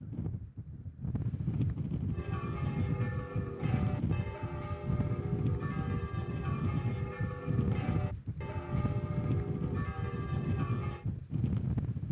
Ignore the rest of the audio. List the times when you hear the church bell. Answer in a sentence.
You can hear the church bell from 2.1 to 11.1 s.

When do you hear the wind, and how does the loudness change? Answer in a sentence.
You can hear the wind from 0.0 to 12.0 s, at a steady volume.